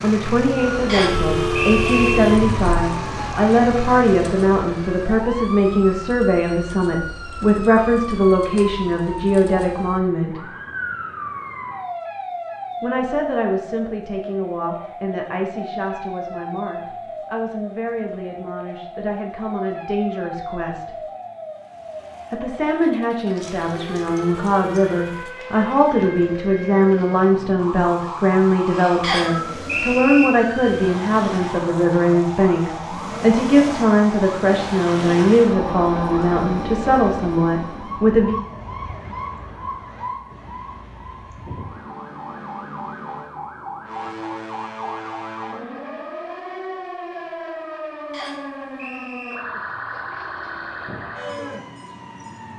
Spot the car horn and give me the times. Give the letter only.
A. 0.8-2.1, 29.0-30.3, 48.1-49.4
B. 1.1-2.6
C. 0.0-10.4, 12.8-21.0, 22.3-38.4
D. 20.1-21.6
B.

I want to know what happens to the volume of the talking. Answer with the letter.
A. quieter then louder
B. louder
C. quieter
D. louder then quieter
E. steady
A.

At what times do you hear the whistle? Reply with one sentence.
The whistle can be heard from 0.8 to 2.1 s, from 29.0 to 30.3 s and from 48.1 to 49.4 s.